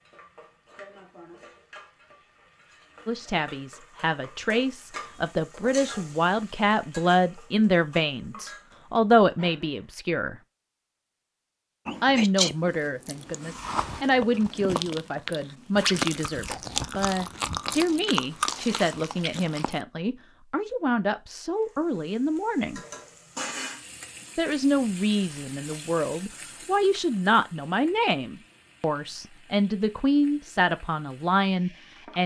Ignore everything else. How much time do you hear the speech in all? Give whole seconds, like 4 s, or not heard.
26 s.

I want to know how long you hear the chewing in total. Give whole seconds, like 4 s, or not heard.
8 s.